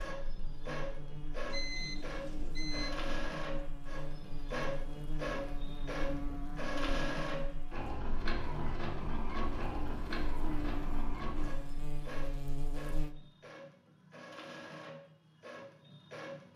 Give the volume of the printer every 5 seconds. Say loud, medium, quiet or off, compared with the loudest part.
loud, loud, medium, medium.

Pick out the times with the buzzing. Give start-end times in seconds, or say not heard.
0.1-13.2.